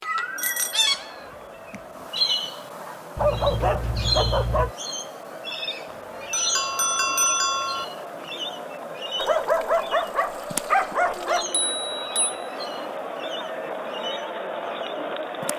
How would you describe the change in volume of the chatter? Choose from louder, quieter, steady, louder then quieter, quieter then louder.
louder.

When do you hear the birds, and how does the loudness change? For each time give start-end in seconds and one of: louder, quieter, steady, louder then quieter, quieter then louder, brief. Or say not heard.
0.0-15.5 quieter.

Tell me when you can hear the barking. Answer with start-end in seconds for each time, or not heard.
3.1-4.7, 9.2-11.4.